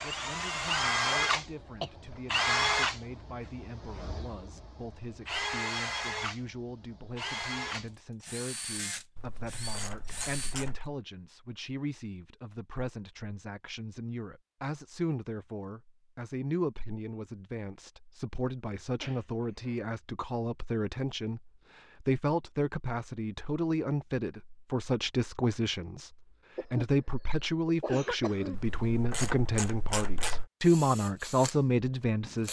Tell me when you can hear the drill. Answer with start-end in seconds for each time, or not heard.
0.0-10.6, 30.6-32.4.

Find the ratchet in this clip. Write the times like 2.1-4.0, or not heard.
9.2-10.8, 28.5-30.4.